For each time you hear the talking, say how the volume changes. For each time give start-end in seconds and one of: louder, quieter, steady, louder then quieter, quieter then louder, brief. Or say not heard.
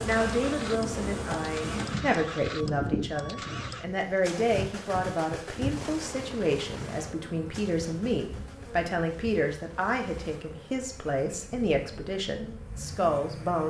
0.0-13.6 steady.